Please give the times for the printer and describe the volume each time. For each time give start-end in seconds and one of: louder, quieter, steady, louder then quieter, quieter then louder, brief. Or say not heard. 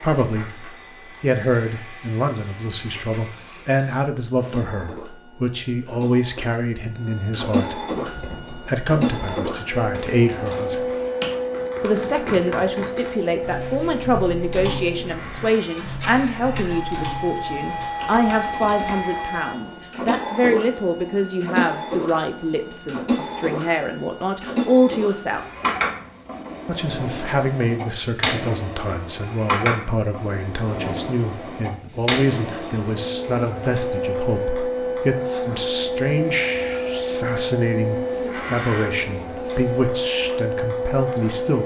0.0-41.6 louder.